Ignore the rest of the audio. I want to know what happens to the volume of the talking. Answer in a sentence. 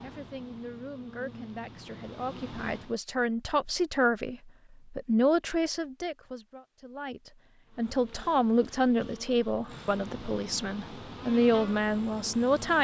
The volume of the talking goes up.